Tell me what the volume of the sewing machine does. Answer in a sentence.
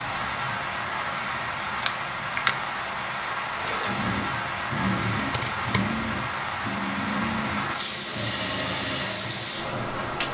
The volume of the sewing machine stays about the same.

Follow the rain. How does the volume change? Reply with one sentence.
The volume of the rain stays about the same.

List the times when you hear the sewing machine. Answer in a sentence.
You can hear the sewing machine from 3.5 to 10.0 s.